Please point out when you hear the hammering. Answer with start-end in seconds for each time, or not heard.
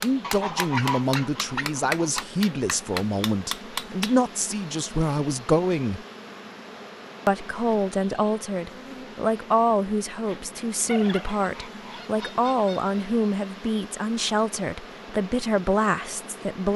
0.0-4.2.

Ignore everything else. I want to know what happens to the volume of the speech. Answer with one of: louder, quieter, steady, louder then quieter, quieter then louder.
steady.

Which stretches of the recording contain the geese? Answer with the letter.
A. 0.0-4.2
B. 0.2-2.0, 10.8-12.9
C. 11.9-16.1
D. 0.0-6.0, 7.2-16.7
B.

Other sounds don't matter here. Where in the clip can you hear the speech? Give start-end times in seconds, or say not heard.
0.0-6.0, 7.2-16.7.